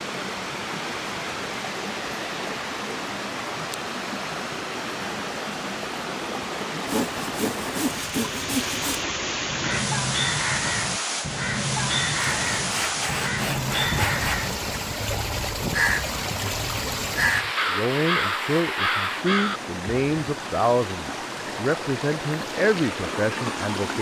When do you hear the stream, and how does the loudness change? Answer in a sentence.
You can hear the stream from 0.0 to 23.9 s, at a steady volume.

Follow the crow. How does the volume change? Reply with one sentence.
The loudness of the crow stays about the same.